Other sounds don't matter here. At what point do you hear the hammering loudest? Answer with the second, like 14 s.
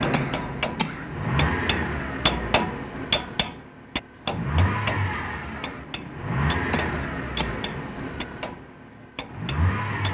2 s.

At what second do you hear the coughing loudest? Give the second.
1 s.